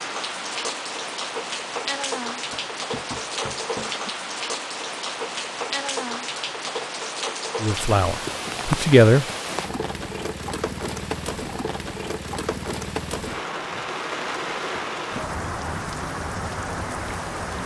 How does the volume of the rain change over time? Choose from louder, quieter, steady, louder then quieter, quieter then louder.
steady.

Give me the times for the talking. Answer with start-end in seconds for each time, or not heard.
7.6-9.2.